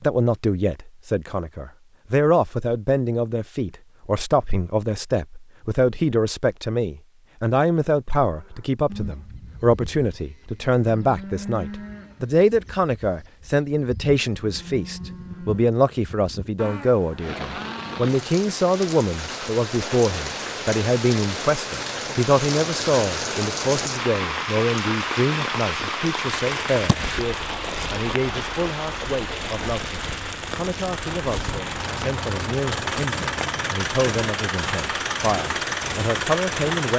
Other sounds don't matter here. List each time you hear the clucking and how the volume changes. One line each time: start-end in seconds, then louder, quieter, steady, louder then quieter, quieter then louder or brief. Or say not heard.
not heard.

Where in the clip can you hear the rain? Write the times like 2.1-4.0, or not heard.
17.1-36.9.